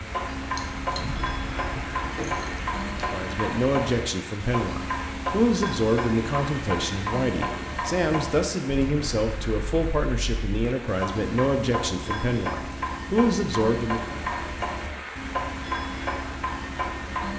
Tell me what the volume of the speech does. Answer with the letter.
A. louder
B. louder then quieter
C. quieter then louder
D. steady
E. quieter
D.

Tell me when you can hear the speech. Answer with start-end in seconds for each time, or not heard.
3.0-14.2.